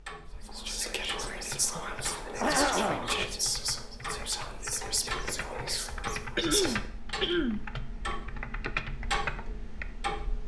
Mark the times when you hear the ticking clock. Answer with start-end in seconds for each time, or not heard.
0.0-10.4.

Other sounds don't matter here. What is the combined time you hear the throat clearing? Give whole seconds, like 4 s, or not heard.
2 s.